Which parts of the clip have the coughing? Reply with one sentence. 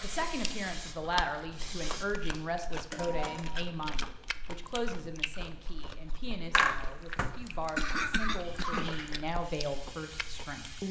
The coughing can be heard from 6.5 to 9.2 s.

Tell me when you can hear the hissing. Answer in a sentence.
You can hear the hissing from 0.0 to 2.1 s and from 9.4 to 10.8 s.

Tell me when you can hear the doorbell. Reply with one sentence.
The doorbell can be heard from 2.3 to 3.6 s and from 8.2 to 9.3 s.